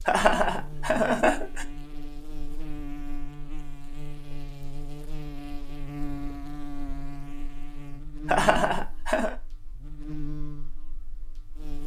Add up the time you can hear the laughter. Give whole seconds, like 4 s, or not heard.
3 s.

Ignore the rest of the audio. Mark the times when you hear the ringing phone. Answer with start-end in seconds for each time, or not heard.
not heard.